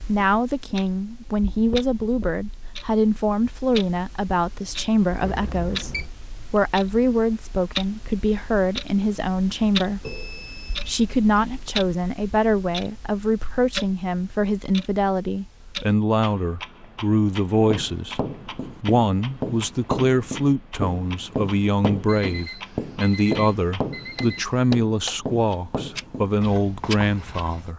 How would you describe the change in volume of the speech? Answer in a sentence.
The loudness of the speech stays about the same.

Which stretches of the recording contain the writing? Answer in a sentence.
The writing can be heard from 17.6 to 27.7 s.